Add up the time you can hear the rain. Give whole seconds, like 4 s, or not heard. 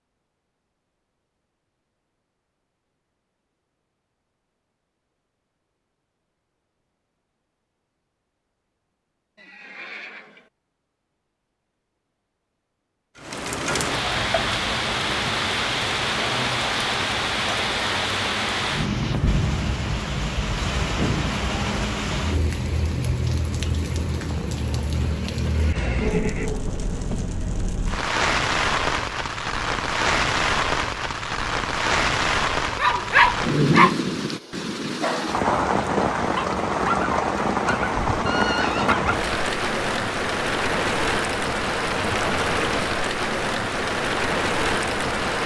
32 s.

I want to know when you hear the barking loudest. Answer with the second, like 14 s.
33 s.